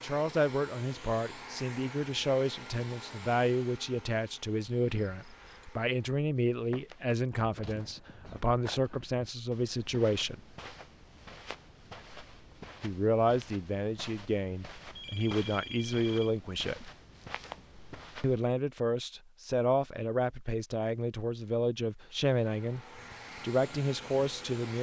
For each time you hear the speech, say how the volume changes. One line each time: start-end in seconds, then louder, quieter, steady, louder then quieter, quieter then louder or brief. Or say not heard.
0.0-10.4 steady
12.8-16.9 quieter then louder
18.2-24.7 steady.